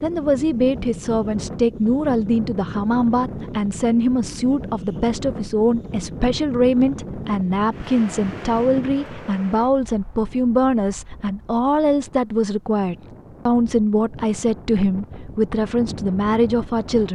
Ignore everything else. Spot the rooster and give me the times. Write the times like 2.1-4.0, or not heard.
not heard.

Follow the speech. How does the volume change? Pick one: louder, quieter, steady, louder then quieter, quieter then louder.
steady.